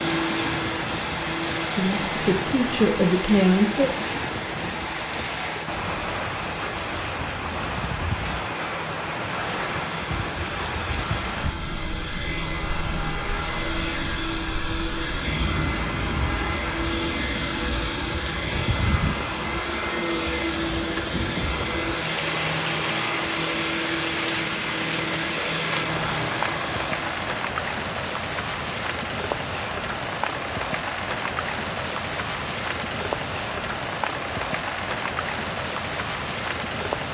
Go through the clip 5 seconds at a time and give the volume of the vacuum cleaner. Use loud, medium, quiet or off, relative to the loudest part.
loud, medium, loud, loud, loud, loud, off, off.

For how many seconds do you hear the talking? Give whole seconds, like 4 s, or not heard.
2 s.